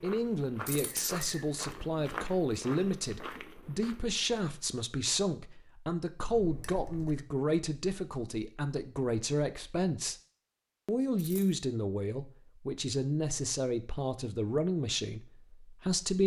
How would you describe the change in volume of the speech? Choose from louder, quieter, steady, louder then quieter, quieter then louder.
steady.